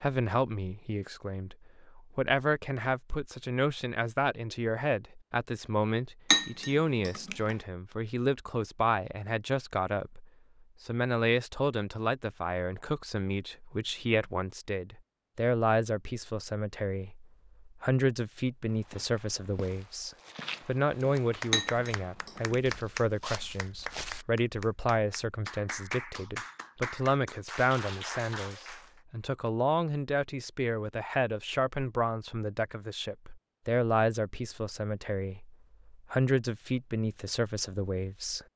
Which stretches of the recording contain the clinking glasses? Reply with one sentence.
The clinking glasses can be heard from 6.3 to 7.5 s and from 21.5 to 22.8 s.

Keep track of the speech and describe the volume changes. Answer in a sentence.
The loudness of the speech stays about the same.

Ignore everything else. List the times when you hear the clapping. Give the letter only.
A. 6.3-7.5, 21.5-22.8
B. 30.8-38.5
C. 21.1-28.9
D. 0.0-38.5
C.